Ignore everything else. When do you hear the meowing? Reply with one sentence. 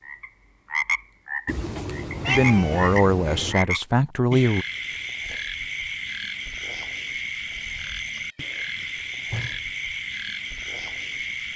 You can hear the meowing from 1.4 to 3.5 s and from 7.8 to 9.6 s.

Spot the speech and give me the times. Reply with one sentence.
You can hear the speech from 2.2 to 4.7 s.